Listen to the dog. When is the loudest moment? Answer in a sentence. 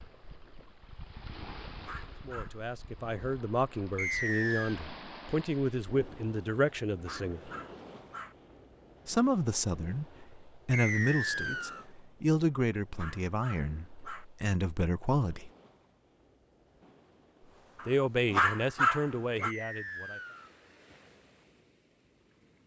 The loudest moment of the dog is at 19 seconds.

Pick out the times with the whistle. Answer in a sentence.
You can hear the whistle from 4.0 to 4.8 s, from 10.7 to 11.8 s and from 19.4 to 20.5 s.